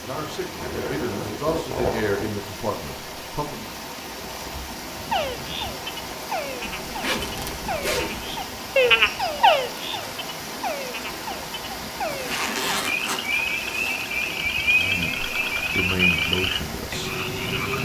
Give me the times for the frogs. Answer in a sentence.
The frogs can be heard from 5.0 to 17.8 s.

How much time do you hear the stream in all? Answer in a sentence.
You can hear the stream for 18 seconds altogether.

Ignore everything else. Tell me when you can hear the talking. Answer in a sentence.
You can hear the talking from 0.0 to 3.7 s and from 14.7 to 17.1 s.